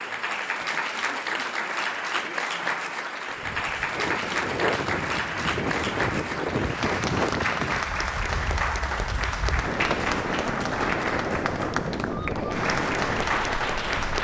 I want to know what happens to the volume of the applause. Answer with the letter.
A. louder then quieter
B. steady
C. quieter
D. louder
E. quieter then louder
B.